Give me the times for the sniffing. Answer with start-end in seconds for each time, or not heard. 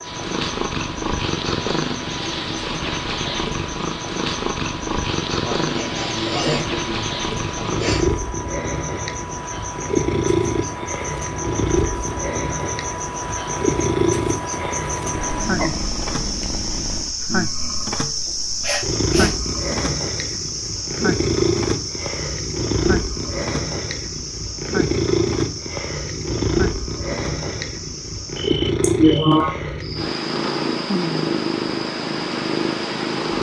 5.4-8.1, 18.2-19.4, 28.8-29.6.